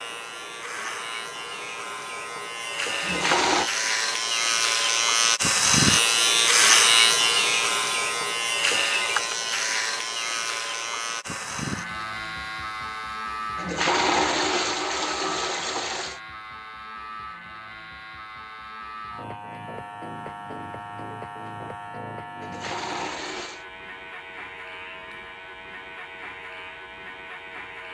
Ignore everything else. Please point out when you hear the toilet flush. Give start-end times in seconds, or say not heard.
3.0-3.7, 13.6-16.2, 22.4-23.6.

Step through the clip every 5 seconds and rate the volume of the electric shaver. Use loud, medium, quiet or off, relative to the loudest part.
medium, loud, medium, quiet, quiet, quiet.